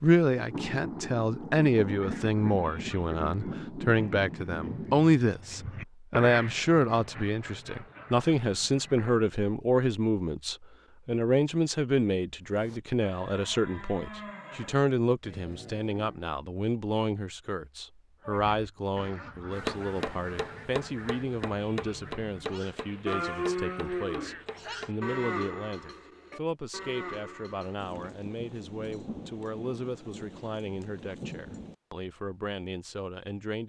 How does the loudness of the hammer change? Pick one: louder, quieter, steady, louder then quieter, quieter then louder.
quieter.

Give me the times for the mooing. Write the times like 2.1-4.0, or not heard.
12.4-16.2, 22.5-27.9.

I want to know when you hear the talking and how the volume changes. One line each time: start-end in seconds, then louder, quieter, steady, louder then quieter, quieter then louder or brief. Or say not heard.
0.0-33.6 quieter.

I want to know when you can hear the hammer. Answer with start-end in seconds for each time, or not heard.
19.5-25.0.